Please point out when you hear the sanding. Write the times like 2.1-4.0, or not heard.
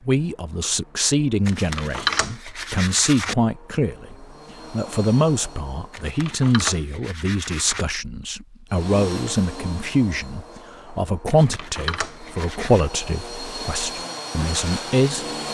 1.4-3.4, 5.9-7.8, 11.2-12.9.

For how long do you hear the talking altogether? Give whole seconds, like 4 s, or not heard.
15 s.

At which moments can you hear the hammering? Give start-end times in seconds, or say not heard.
not heard.